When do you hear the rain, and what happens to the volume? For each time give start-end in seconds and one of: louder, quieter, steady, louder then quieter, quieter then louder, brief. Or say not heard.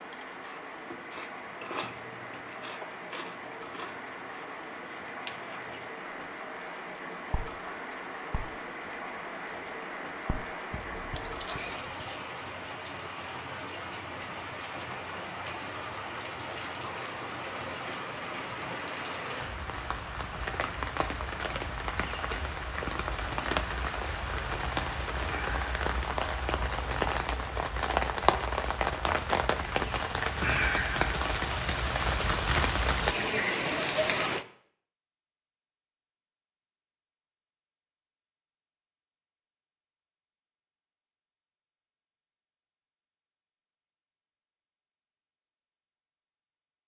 0.0-34.5 louder.